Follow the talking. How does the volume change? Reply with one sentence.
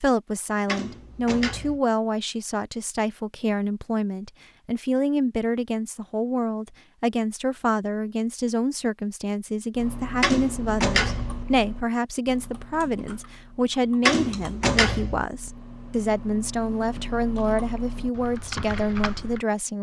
The loudness of the talking stays about the same.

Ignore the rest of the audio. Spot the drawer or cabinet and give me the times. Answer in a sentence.
The drawer or cabinet can be heard from 0.7 to 1.8 s, from 10.2 to 11.4 s and from 14.0 to 15.2 s.